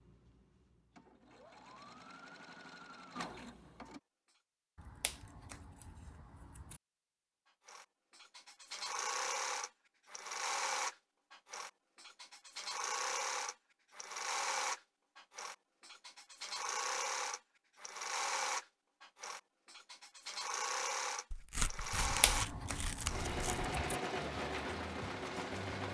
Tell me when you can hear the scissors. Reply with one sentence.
The scissors can be heard from 4.8 to 6.8 s and from 21.9 to 23.9 s.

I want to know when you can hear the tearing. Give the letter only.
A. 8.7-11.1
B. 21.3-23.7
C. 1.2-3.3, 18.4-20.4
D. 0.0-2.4
B.